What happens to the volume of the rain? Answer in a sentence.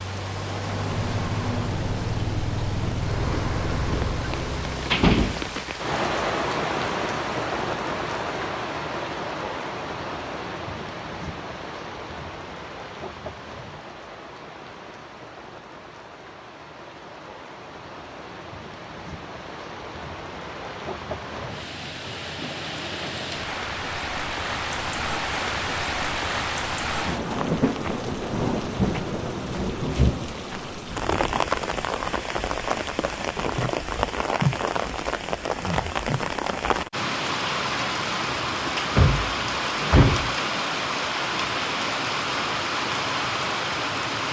The loudness of the rain goes down, then up.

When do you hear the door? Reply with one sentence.
You can hear the door from 4.0 to 5.9 s and from 38.6 to 40.4 s.